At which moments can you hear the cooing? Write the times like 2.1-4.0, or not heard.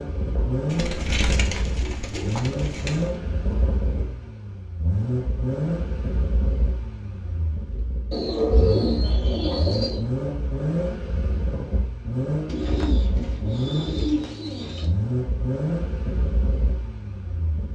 0.7-3.1, 8.1-10.1, 12.4-14.8.